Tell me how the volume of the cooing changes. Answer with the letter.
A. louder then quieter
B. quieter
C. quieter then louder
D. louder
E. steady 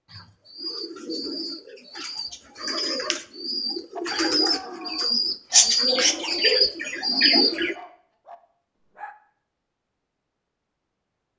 D.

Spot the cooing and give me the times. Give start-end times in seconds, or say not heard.
0.1-7.8.